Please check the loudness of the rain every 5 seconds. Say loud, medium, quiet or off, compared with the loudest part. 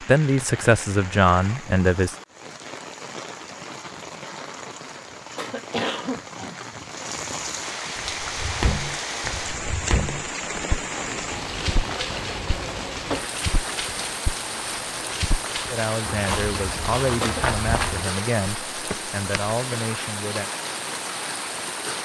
medium, loud, loud, loud, loud.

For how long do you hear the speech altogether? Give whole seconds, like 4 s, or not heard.
7 s.